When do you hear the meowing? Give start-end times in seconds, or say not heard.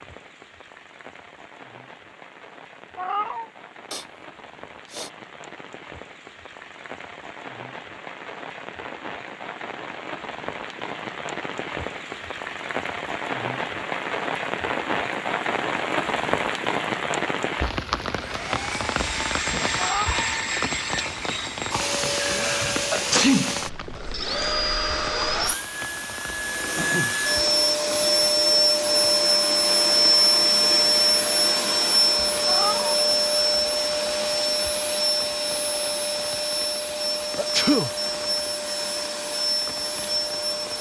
3.0-3.5, 19.8-20.3, 32.5-33.0.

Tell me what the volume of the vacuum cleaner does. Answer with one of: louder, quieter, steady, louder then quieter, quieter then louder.
louder then quieter.